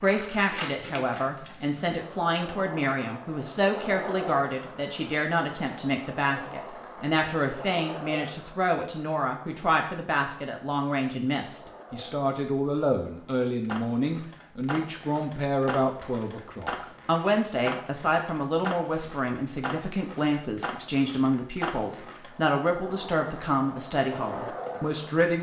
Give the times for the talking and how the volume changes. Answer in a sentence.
You can hear the talking from 0.0 to 25.3 s, at a steady volume.